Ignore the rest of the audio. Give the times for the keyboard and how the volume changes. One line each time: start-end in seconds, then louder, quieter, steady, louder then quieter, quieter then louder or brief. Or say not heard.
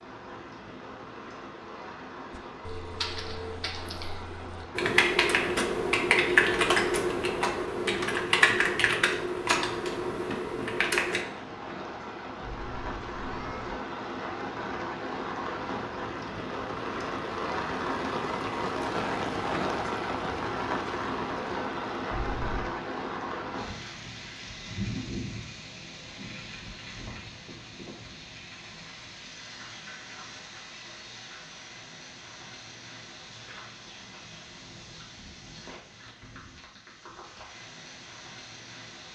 2.4-11.2 louder then quieter.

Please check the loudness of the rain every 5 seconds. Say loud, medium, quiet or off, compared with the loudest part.
medium, medium, medium, loud, loud, medium, quiet, quiet.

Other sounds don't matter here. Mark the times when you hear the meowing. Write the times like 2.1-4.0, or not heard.
12.4-13.8, 22.1-22.8.